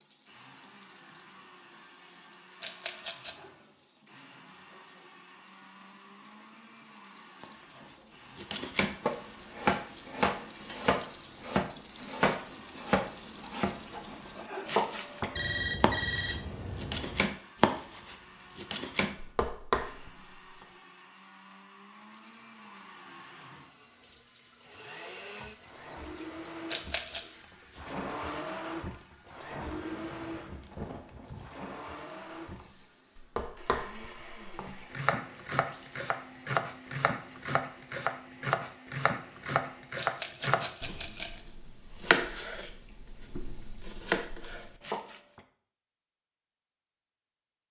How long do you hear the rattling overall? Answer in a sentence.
The rattling can be heard for 3 seconds in total.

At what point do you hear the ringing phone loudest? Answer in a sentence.
The loudest moment of the ringing phone is at 16 seconds.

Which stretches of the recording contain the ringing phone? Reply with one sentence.
You can hear the ringing phone from 15.3 to 17.3 s and from 29.5 to 31.5 s.